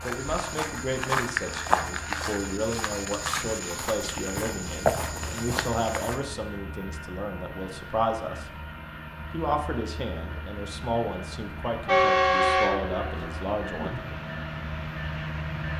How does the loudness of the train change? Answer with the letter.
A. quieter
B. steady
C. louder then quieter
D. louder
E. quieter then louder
D.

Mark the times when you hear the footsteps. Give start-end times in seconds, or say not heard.
0.0-6.2.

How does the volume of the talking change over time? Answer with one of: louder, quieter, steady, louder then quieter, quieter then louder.
steady.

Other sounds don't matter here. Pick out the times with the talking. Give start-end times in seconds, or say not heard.
0.0-8.4, 9.3-14.0.